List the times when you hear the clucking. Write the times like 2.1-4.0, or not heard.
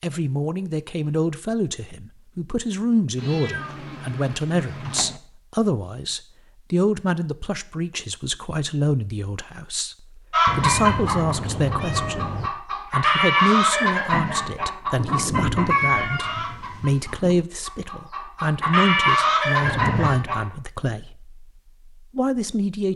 10.3-20.4.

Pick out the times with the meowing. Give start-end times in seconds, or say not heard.
3.1-5.2, 10.4-12.5, 19.6-20.2.